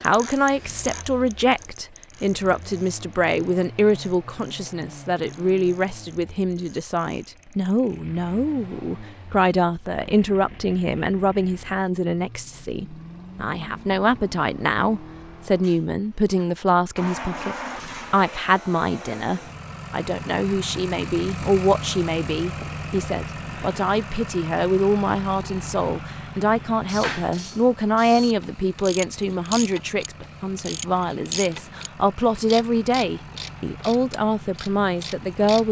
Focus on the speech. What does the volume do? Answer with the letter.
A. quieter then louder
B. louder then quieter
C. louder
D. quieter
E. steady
E.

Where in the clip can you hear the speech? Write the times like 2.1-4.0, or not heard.
0.0-35.6.